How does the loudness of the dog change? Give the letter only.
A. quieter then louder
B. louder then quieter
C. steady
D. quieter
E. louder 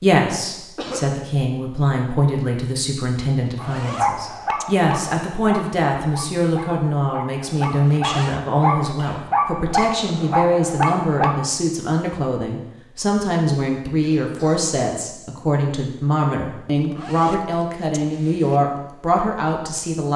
A.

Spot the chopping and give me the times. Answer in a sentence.
You can't hear the chopping here.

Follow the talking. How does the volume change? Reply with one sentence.
The loudness of the talking stays about the same.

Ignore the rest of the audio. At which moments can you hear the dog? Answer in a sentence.
You can hear the dog from 3.5 to 11.4 s.